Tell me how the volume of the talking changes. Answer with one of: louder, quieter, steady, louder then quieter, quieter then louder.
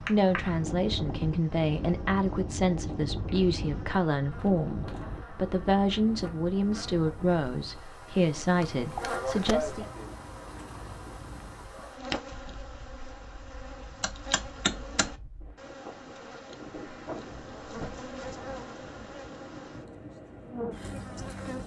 steady.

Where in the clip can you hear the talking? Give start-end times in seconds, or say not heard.
0.0-9.8.